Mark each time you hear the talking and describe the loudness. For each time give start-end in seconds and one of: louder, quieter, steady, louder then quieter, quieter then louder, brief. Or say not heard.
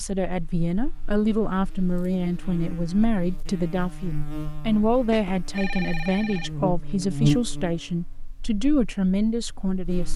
0.0-10.1 steady.